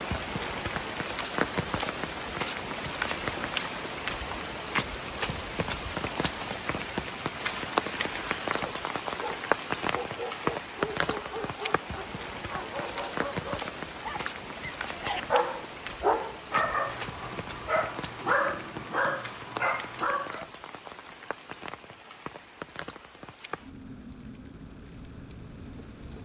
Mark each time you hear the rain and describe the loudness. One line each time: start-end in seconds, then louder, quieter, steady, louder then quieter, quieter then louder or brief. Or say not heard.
0.0-26.2 quieter.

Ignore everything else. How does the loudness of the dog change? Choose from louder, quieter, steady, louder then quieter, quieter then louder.
louder.